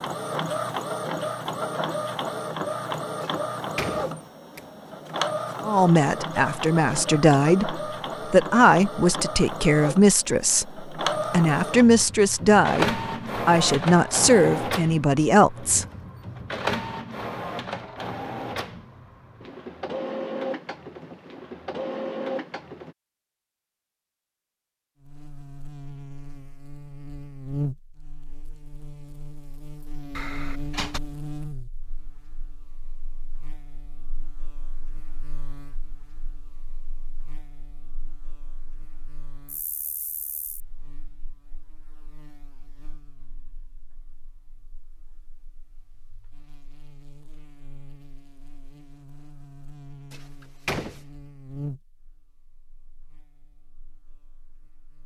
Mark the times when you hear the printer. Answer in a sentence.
The printer can be heard from 0.0 to 22.9 s.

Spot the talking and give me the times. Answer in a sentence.
The talking can be heard from 5.6 to 15.8 s.